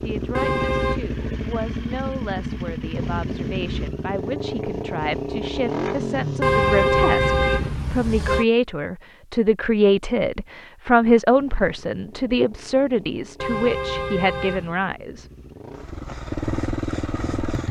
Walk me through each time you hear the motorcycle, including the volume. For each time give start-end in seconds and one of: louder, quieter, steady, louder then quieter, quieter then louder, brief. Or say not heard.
0.0-7.8 steady
11.3-17.6 louder.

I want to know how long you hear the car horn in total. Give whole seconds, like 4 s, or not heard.
4 s.